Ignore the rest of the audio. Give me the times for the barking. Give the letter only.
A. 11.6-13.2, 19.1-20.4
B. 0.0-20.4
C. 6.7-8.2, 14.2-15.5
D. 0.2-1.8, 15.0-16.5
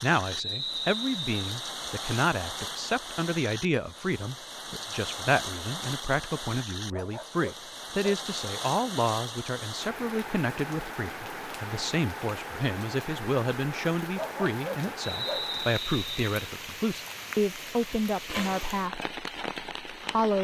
C.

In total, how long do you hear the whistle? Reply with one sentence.
You can hear the whistle for 3 seconds altogether.